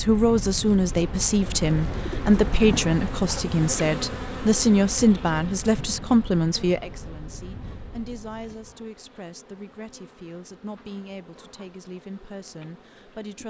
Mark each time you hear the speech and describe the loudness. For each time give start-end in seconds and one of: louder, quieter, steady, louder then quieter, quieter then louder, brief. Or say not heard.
0.0-13.4 quieter.